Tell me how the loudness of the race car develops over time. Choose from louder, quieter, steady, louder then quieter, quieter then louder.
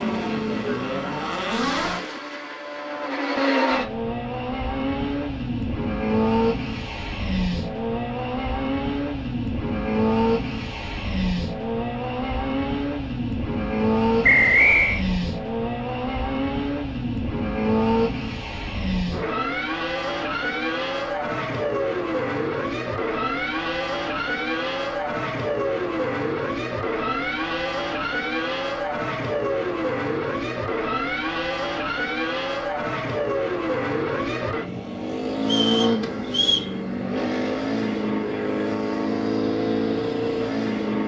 steady.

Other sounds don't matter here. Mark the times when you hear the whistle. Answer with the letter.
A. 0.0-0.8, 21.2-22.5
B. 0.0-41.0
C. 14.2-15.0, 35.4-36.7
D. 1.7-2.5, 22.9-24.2
C.